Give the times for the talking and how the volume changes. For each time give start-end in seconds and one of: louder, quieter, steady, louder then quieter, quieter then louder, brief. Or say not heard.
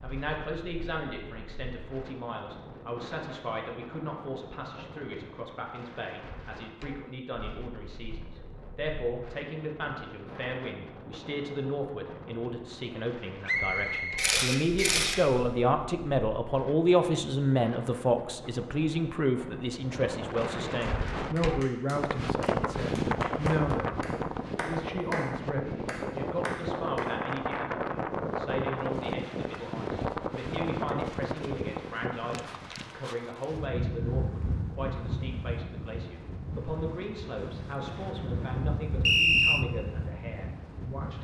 0.0-41.1 louder then quieter.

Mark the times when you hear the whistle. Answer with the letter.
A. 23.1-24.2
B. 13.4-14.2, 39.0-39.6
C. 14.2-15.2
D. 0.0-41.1
B.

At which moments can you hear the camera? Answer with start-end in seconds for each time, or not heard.
14.2-15.2.